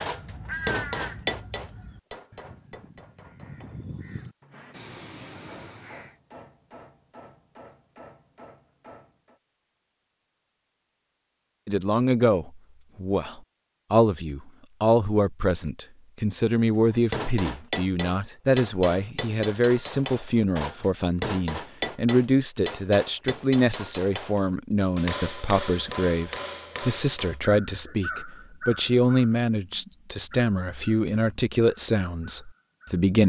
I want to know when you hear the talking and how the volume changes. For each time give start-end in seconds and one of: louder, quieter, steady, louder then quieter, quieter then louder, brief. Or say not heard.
11.7-33.2 steady.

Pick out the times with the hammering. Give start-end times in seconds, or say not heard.
0.0-9.4, 16.9-27.4.